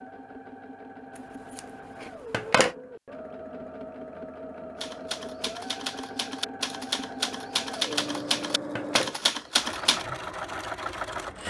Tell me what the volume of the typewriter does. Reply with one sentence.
The volume of the typewriter goes up.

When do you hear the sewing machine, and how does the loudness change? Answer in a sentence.
The sewing machine can be heard from 0.0 to 11.4 s, getting louder.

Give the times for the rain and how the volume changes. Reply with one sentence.
You can't hear the rain here.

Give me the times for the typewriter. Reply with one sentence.
You can hear the typewriter from 4.8 to 10.1 s.